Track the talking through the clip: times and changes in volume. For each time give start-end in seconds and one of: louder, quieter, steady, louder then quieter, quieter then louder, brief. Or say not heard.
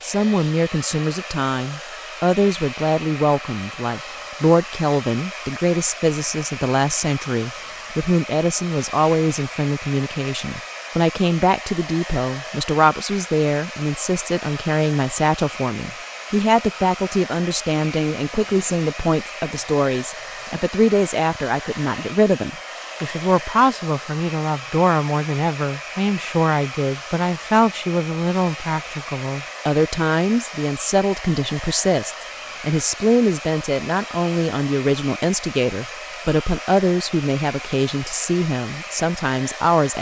0.0-39.9 steady.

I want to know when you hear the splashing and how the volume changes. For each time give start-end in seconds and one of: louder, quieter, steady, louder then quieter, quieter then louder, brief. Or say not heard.
not heard.